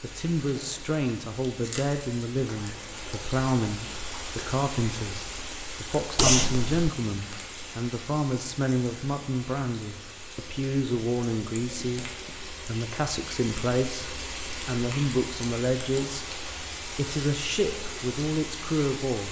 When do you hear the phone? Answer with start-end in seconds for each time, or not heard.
6.2-6.9.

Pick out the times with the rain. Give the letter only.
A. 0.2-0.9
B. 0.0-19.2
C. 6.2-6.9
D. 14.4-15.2
B.